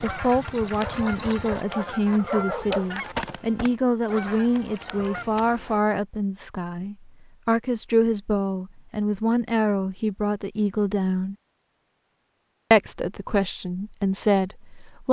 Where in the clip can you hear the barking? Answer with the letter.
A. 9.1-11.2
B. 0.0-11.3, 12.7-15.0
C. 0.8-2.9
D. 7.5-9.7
C.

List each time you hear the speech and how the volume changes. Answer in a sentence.
You can hear the speech from 0.0 to 11.3 s, at a steady volume; and briefly from 12.7 to 15.0 s.